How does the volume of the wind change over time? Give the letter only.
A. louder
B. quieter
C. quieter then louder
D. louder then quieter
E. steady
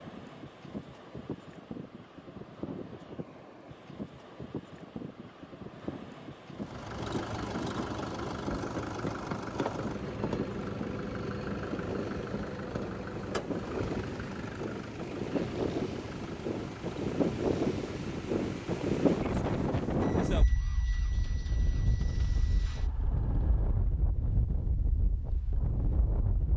D.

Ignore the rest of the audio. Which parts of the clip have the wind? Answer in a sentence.
You can hear the wind from 0.0 to 26.5 s.